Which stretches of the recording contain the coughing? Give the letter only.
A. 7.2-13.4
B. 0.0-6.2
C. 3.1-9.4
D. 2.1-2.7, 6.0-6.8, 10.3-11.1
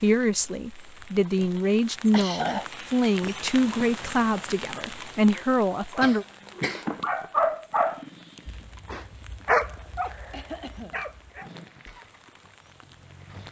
D.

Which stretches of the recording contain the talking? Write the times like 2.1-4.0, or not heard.
0.0-6.2.